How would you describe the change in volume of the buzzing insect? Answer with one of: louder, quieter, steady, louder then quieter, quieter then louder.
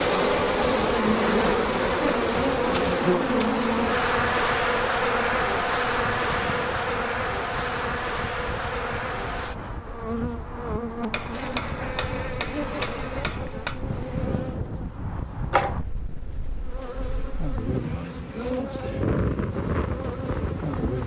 quieter.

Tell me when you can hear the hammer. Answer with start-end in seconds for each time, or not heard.
11.1-13.8.